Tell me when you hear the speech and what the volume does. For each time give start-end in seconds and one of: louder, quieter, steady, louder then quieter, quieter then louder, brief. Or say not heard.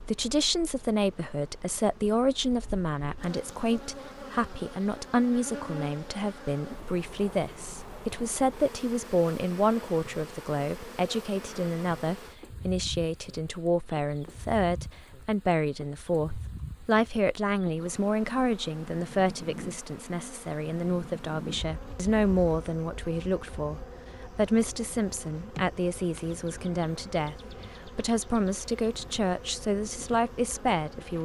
0.0-31.2 steady.